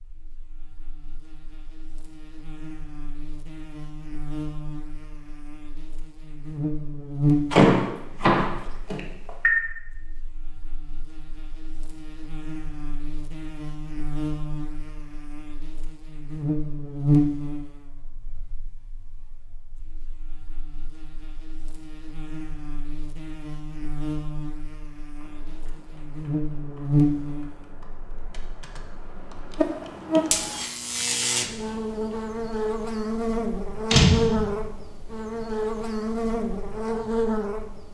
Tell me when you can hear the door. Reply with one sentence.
The door can be heard from 7.5 to 9.5 s and from 33.9 to 34.5 s.